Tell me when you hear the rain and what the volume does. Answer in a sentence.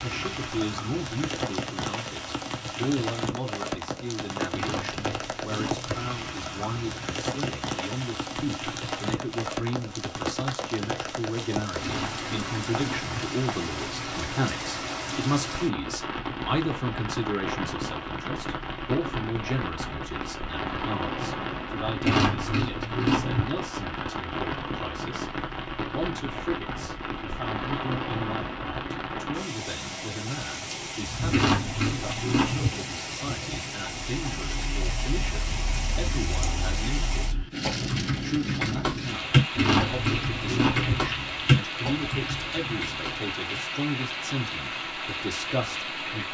You can hear the rain from 0.0 to 46.2 s, at a steady volume.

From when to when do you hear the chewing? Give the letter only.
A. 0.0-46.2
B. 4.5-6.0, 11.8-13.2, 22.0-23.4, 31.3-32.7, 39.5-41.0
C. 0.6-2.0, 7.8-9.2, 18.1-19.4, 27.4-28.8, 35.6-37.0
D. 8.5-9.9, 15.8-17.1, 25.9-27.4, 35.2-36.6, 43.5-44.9
B.